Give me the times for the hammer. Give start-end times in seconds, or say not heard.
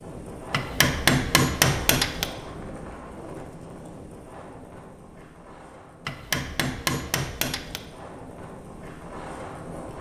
0.5-2.3, 6.0-7.8.